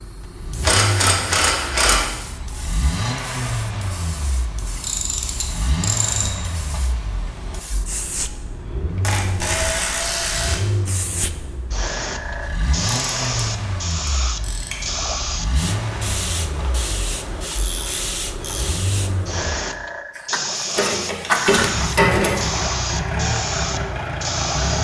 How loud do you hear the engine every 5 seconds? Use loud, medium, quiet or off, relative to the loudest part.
medium, medium, medium, medium, loud.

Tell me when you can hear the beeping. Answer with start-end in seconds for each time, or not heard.
not heard.